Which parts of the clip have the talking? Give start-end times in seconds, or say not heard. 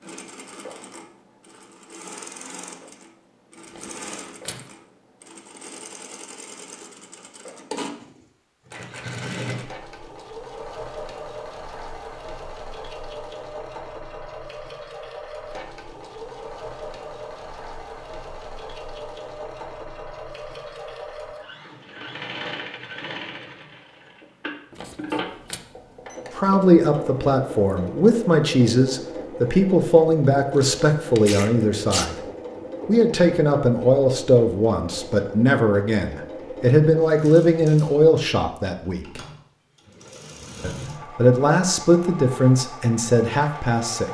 26.4-32.2, 32.9-39.2, 40.6-44.0.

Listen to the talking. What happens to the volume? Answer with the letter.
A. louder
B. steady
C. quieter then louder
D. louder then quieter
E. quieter
B.